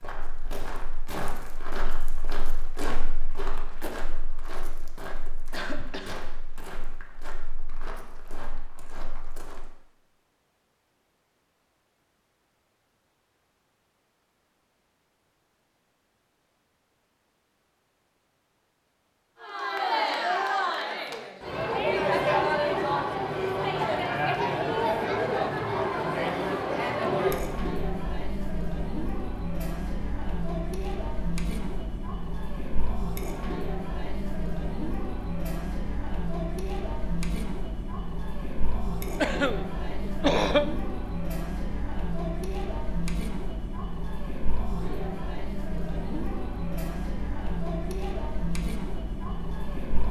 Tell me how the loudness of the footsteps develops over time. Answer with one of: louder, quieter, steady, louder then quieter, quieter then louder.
quieter.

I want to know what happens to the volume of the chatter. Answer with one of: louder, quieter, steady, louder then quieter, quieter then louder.
quieter.